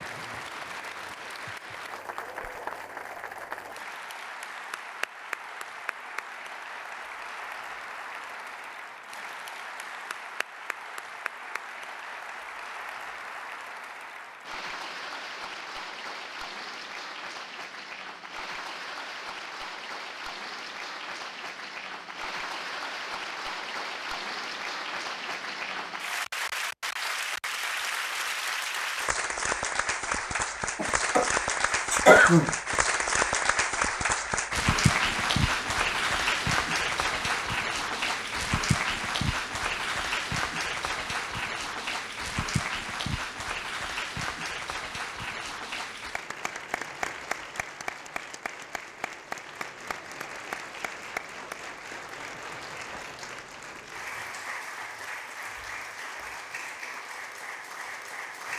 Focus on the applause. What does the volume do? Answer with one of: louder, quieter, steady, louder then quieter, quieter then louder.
louder then quieter.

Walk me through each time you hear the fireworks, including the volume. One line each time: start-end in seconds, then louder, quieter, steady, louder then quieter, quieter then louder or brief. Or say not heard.
not heard.